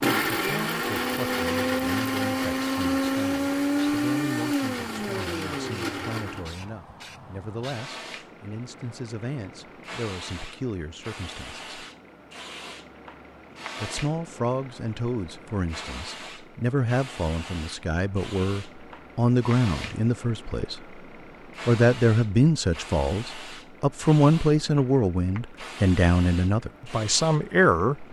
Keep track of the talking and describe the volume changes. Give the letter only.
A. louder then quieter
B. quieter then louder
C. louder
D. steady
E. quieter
C.